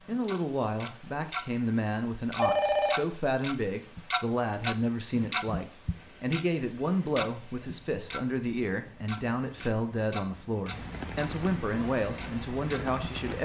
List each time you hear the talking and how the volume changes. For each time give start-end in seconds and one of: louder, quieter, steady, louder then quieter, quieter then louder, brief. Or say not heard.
0.1-13.4 steady.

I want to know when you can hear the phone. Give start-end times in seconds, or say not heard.
2.4-3.0.